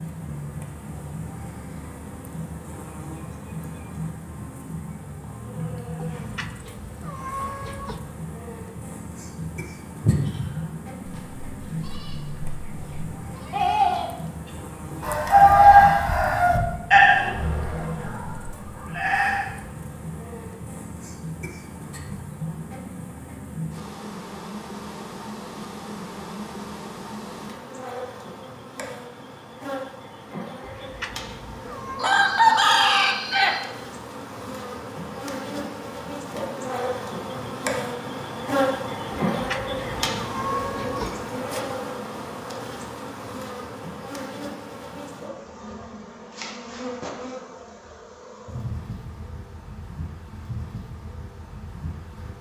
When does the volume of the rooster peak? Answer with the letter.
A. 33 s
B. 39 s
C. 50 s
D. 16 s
D.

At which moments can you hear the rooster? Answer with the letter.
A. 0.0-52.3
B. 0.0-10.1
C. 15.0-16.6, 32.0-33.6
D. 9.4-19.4
C.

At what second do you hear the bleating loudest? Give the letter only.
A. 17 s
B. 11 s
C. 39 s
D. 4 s
A.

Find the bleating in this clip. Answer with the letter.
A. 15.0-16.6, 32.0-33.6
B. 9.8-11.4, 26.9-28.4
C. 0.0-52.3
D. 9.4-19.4
D.